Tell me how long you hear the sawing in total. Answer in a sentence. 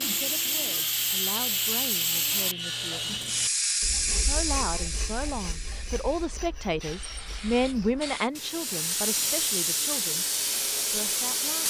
The sawing can be heard for 8 seconds in total.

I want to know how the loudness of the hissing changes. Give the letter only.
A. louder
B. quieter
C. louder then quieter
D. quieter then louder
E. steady
D.